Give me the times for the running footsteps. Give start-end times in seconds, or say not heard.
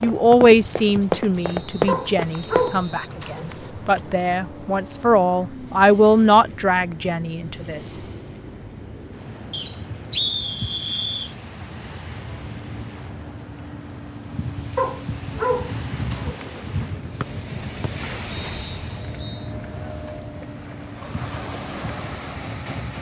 0.0-2.8.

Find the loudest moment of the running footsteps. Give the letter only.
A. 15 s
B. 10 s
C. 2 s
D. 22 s
C.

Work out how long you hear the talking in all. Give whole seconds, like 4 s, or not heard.
8 s.